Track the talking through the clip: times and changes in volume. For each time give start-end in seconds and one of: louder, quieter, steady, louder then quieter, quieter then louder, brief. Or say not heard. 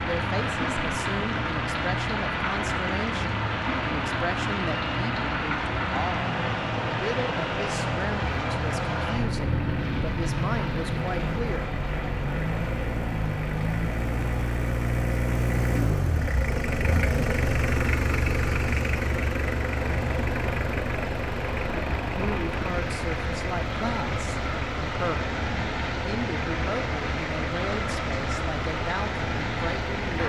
0.0-11.8 steady
22.1-30.2 steady.